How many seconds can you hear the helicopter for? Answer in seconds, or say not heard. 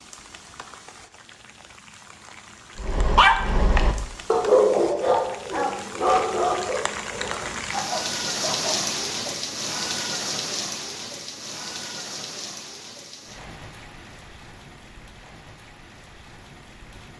not heard.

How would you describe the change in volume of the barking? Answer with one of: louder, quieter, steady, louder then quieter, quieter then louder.
quieter.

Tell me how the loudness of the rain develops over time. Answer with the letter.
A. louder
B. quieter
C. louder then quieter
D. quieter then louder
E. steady
C.